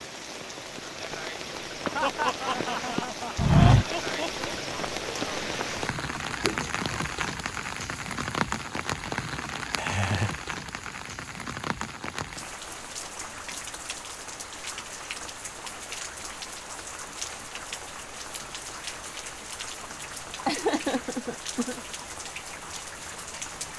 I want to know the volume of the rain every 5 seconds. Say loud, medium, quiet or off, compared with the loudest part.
loud, loud, medium, medium, medium.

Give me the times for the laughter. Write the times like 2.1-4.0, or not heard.
1.9-4.5, 9.8-10.3, 20.4-21.8.